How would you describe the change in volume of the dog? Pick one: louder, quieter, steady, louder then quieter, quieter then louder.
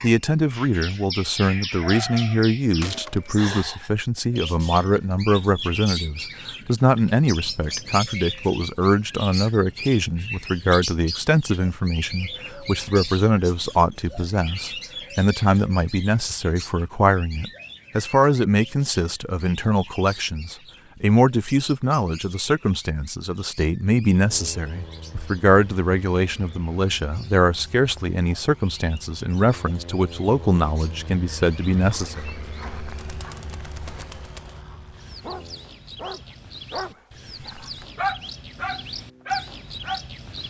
quieter then louder.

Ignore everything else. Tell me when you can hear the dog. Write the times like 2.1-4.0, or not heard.
31.7-40.0.